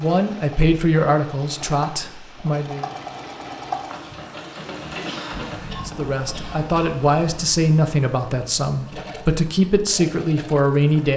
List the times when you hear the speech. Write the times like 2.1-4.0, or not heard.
0.0-2.9, 5.8-11.1.